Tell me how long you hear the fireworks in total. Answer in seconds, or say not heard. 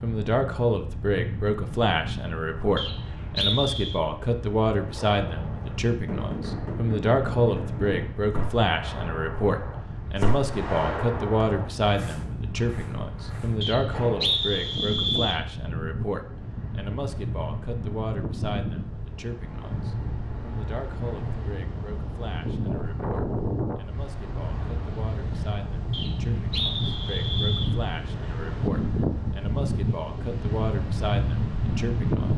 9 s.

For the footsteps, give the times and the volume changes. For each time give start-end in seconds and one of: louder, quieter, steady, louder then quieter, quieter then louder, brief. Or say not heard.
not heard.